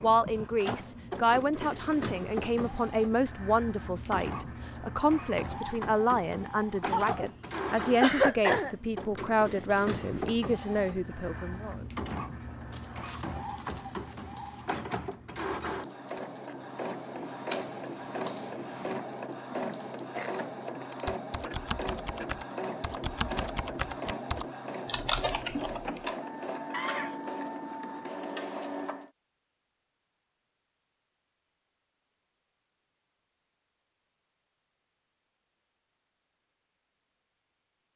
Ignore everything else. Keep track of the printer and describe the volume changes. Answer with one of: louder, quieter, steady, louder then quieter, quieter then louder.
steady.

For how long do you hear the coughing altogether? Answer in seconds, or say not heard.
3 s.